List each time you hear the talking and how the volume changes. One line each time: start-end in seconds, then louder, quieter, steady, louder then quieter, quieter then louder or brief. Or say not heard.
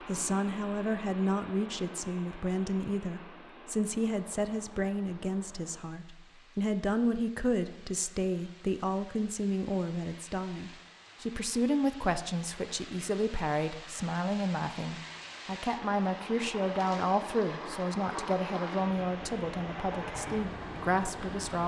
0.1-21.6 steady.